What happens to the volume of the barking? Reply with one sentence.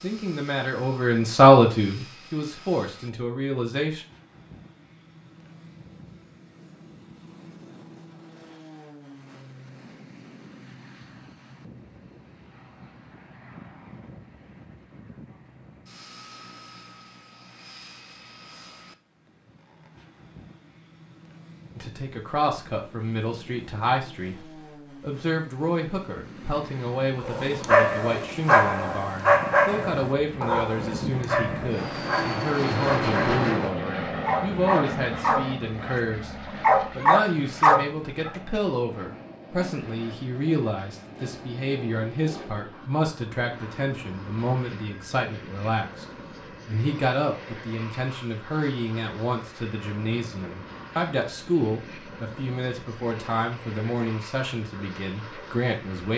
The loudness of the barking goes down, then up.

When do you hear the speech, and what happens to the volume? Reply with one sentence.
The speech can be heard from 0.0 to 4.0 s, getting louder then quieter; and from 21.8 to 56.1 s, at a steady volume.